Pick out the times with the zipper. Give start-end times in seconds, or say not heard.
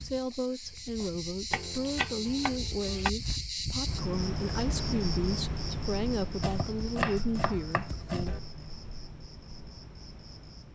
not heard.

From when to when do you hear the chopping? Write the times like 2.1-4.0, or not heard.
1.5-3.1, 6.4-8.4.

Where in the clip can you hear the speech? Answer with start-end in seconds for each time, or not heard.
0.0-8.3.